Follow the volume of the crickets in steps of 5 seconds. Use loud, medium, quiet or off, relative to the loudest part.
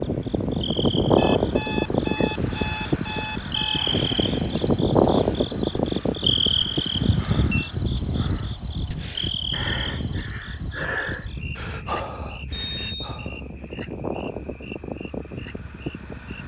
loud, loud, quiet, quiet.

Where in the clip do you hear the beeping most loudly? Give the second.
7 s.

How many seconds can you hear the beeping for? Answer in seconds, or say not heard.
4 s.